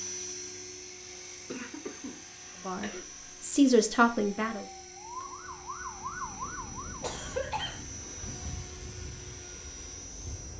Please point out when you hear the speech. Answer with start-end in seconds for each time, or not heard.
2.6-4.7.